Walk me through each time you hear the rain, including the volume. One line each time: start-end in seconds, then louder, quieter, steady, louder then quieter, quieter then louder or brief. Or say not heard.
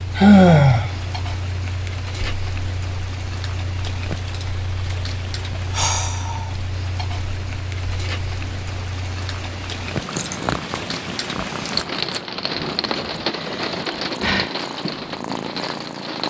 0.0-16.2 louder.